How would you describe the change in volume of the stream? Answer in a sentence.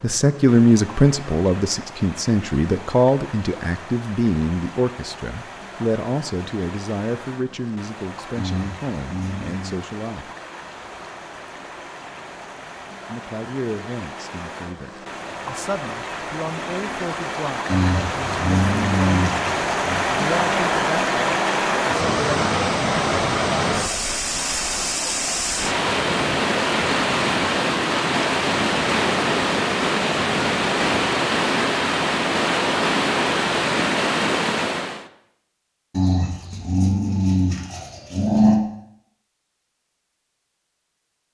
The loudness of the stream goes up.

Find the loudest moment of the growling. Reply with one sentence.
The loudest moment of the growling is at 38 seconds.